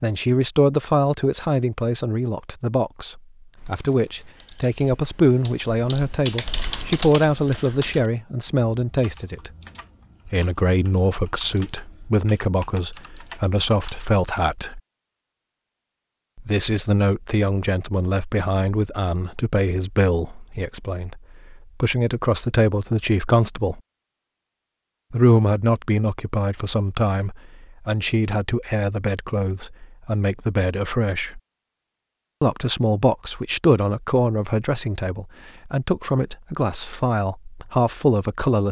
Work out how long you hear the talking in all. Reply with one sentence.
You can hear the talking for 34 seconds altogether.